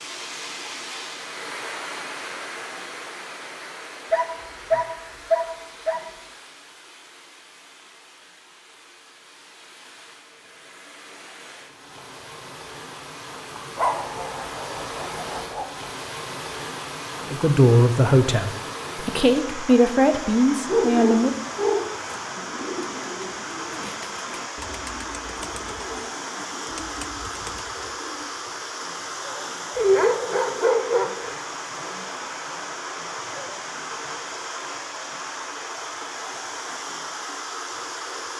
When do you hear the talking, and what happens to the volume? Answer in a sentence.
You can hear the talking from 17.2 to 21.4 s, getting quieter then louder.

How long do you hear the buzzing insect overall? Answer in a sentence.
You can't hear the buzzing insect here.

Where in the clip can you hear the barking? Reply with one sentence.
The barking can be heard from 4.1 to 6.0 s, from 13.8 to 15.7 s, from 20.6 to 22.2 s and from 29.8 to 31.4 s.